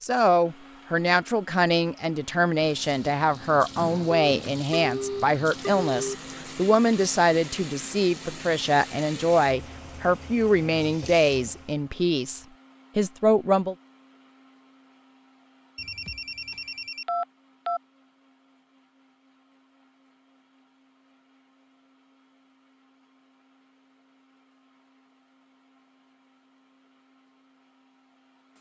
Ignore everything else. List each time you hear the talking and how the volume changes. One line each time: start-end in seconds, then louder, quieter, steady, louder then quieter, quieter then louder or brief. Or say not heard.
0.0-13.8 steady.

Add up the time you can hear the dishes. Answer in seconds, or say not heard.
not heard.